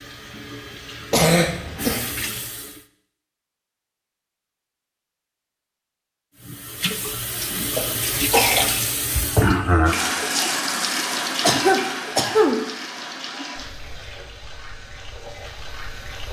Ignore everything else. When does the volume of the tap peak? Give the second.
10 s.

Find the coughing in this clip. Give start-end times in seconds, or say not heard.
1.1-2.0, 7.8-8.7, 11.4-12.6.